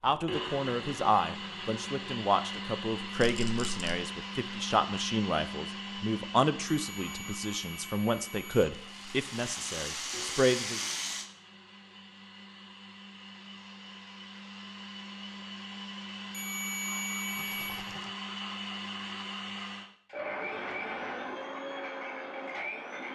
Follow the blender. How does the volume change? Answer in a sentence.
The volume of the blender goes down, then up.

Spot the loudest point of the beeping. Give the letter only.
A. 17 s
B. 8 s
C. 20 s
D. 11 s
A.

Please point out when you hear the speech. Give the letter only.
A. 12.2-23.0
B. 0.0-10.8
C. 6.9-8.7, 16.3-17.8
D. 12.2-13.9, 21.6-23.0
B.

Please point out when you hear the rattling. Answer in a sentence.
The rattling can be heard from 3.2 to 4.0 s, from 8.5 to 11.3 s and from 17.4 to 18.1 s.